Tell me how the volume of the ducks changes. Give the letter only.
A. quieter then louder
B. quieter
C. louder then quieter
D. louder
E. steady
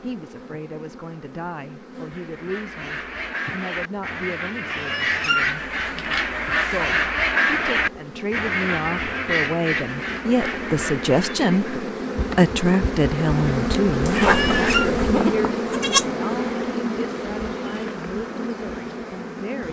C.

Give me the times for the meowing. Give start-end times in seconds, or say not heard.
4.7-7.0, 14.1-14.9.